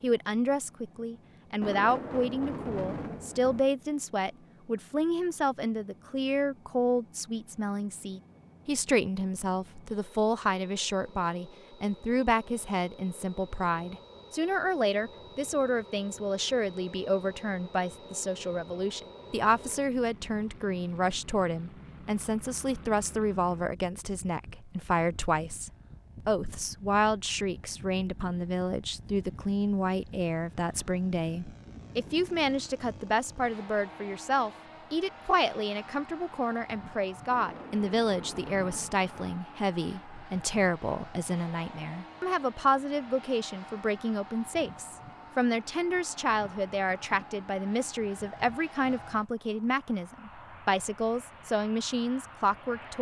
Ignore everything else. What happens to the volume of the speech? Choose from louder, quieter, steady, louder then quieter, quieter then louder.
steady.